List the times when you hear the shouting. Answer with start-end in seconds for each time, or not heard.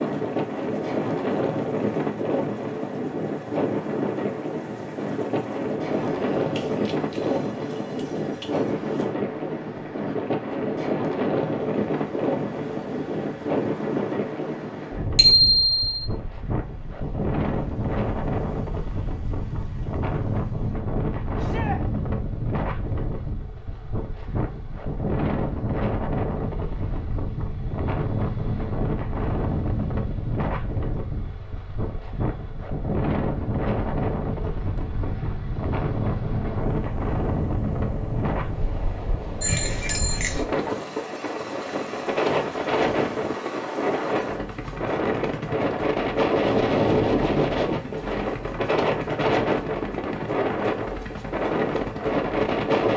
21.4-21.8.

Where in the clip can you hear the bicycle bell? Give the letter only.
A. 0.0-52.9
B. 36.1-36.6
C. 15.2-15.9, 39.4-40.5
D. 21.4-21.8
C.